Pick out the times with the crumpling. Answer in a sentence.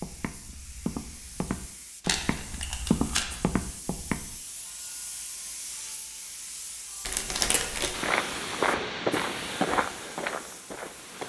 The crumpling can be heard from 2.0 to 3.4 s and from 7.0 to 8.0 s.